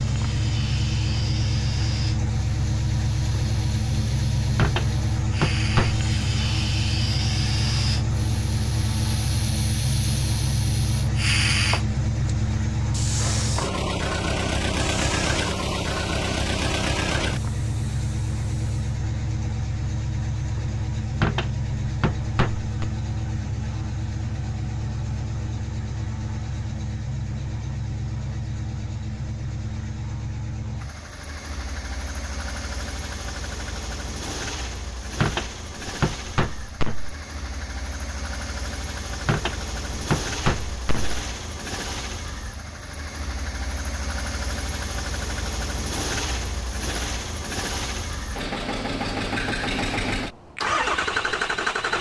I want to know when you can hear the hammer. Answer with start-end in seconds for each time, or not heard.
4.5-6.0, 21.2-22.9, 35.2-37.1, 39.2-41.2.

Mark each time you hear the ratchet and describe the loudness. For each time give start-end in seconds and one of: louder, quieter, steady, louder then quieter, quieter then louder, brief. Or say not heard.
not heard.